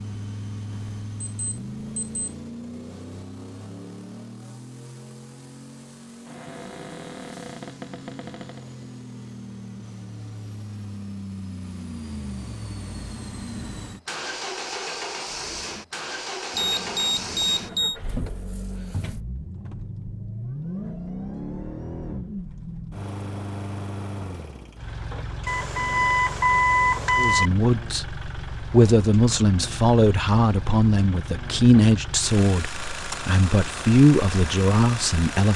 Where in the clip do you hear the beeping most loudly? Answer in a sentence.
The volume of the beeping peaks at 27 seconds.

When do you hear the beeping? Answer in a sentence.
The beeping can be heard from 0.7 to 2.4 s, from 16.6 to 17.9 s and from 25.4 to 27.5 s.